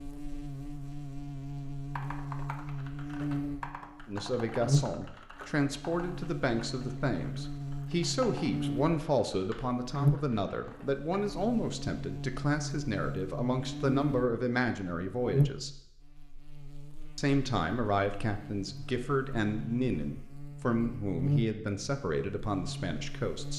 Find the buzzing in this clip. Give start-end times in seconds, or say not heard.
0.0-23.5.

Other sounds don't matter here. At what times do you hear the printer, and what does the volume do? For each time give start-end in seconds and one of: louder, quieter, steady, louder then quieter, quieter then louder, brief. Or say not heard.
not heard.